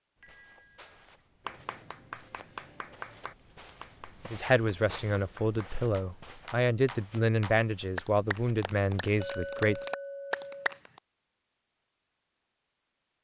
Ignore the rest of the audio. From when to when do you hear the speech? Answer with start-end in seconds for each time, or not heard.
4.3-9.9.